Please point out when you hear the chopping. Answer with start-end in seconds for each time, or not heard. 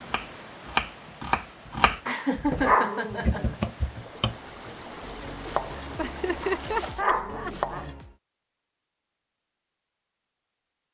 0.1-8.2.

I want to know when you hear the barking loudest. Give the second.
3 s.